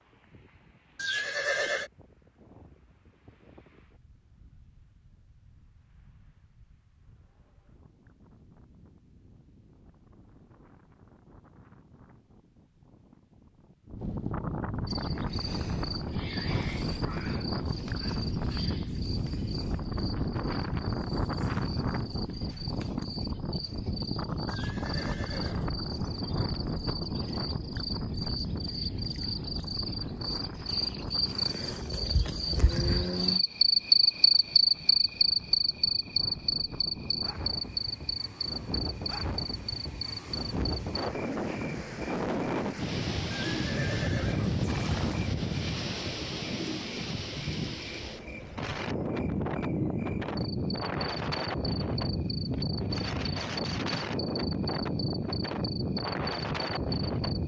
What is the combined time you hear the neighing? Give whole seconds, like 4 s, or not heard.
4 s.